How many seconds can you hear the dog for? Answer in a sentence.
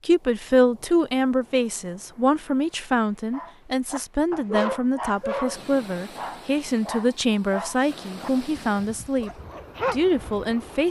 The dog can be heard for 7 seconds in total.